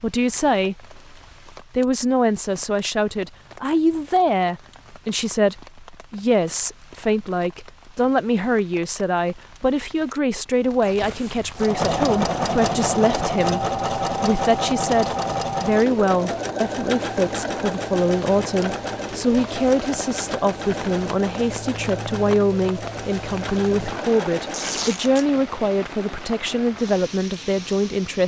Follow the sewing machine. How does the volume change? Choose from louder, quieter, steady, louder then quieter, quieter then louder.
quieter.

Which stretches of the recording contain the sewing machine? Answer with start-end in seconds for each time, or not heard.
11.6-24.8.